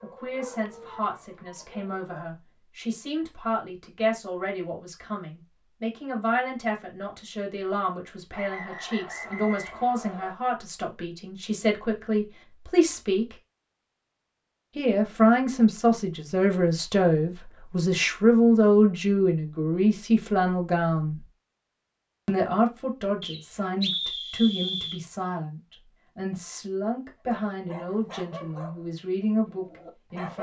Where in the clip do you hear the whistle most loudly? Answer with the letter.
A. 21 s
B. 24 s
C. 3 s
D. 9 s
B.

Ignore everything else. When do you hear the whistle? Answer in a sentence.
The whistle can be heard from 8.3 to 10.3 s and from 23.2 to 25.0 s.